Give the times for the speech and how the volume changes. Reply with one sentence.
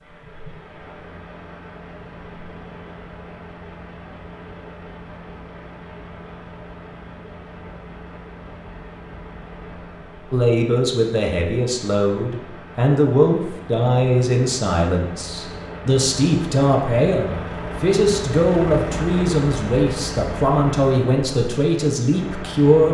The speech can be heard from 10.3 to 22.8 s, at a steady volume.